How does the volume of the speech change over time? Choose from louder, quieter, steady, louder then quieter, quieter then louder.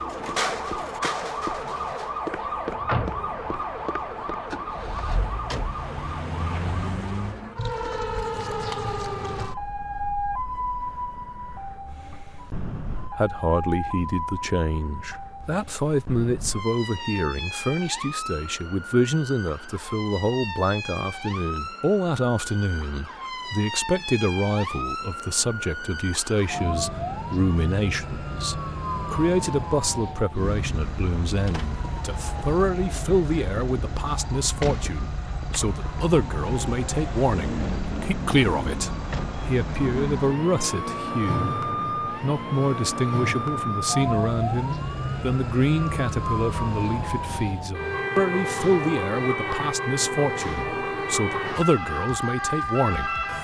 steady.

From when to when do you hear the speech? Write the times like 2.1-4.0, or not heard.
12.9-53.2.